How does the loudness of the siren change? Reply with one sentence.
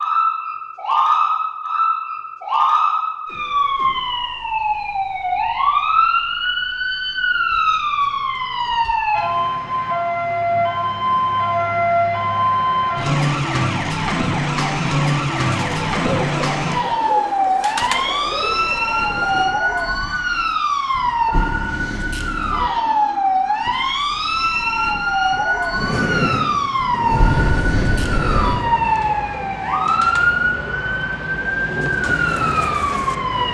The loudness of the siren stays about the same.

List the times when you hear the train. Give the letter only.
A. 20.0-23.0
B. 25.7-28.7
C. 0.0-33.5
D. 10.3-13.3
B.